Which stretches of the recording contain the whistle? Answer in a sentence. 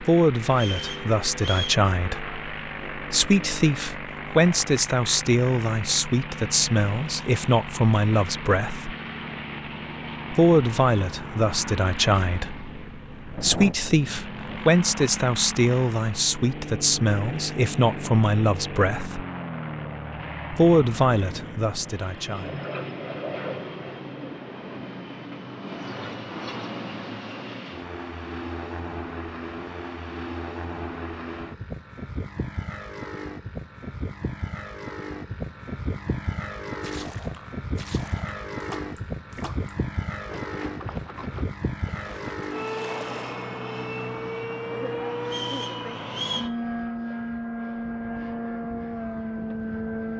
You can hear the whistle from 0.5 to 1.8 s and from 45.2 to 46.5 s.